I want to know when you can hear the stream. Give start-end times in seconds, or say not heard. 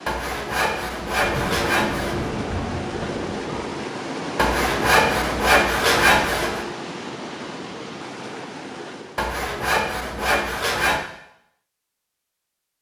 0.0-9.3.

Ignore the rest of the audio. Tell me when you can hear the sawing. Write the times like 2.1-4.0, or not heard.
0.1-2.3, 4.3-6.7, 9.2-11.0.